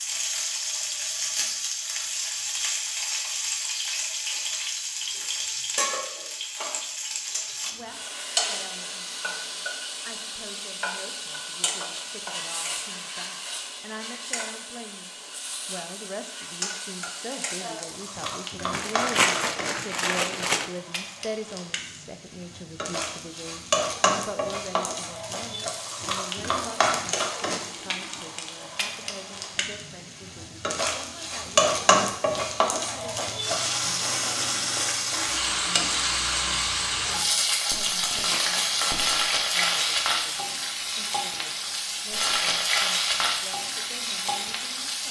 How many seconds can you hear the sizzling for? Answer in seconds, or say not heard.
45 s.